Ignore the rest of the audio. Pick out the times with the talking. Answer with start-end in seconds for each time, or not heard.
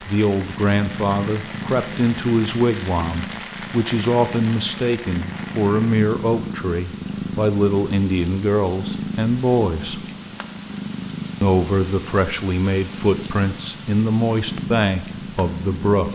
0.1-10.1, 11.4-16.0.